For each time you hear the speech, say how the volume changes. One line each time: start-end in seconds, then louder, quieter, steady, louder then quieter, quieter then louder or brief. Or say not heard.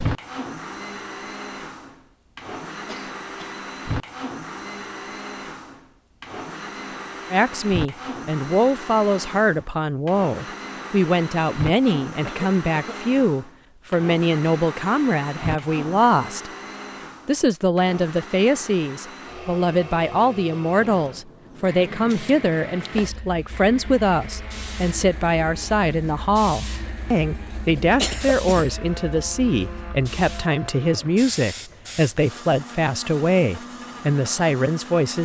7.3-16.5 steady
17.2-35.1 steady.